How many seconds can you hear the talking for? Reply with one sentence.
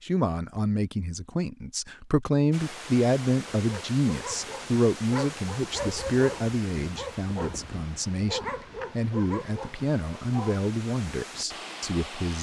You can hear the talking for 12 seconds altogether.